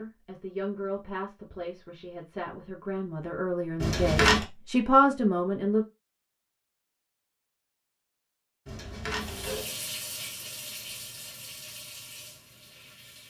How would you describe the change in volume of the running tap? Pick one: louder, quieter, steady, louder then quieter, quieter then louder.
quieter.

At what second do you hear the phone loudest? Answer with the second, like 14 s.
4 s.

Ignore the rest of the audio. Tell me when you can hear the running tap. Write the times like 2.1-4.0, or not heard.
9.2-13.2.